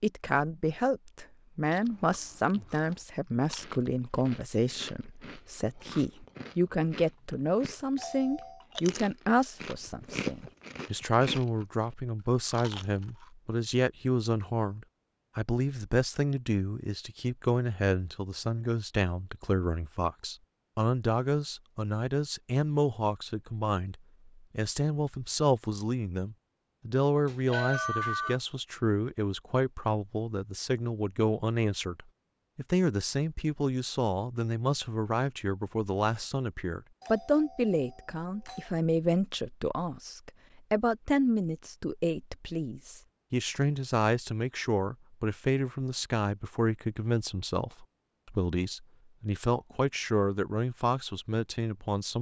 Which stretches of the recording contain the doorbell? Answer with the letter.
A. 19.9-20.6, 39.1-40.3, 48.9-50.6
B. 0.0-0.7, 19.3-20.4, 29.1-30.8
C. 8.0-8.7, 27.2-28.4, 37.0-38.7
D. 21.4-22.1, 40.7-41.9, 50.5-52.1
C.